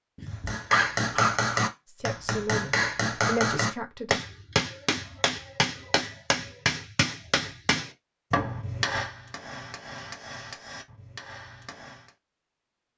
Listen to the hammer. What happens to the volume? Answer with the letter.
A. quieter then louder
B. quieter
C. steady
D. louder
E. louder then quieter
B.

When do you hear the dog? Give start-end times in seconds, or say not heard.
0.1-1.7.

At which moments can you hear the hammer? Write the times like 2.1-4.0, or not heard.
0.5-12.1.